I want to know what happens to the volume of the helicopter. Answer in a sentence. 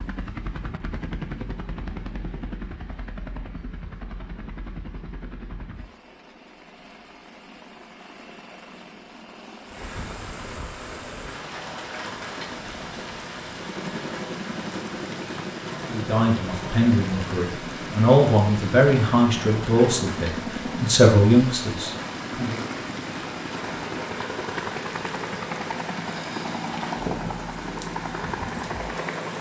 The volume of the helicopter goes down, then up.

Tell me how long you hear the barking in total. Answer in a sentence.
The barking can't be heard in this clip.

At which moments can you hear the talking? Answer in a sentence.
You can hear the talking from 15.9 to 22.6 s.